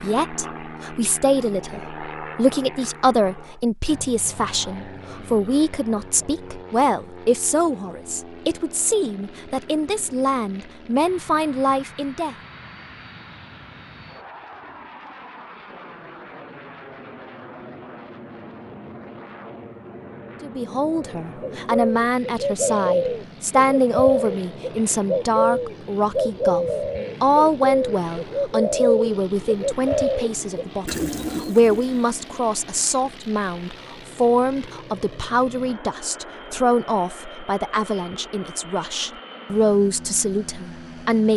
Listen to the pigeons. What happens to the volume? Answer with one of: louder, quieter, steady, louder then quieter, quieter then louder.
steady.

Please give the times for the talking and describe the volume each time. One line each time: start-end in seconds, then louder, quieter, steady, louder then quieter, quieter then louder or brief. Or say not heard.
0.0-12.3 steady
20.4-41.3 steady.